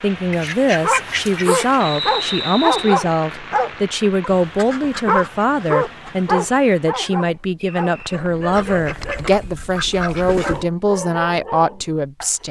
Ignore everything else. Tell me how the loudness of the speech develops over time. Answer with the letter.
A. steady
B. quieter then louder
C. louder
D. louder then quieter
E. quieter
A.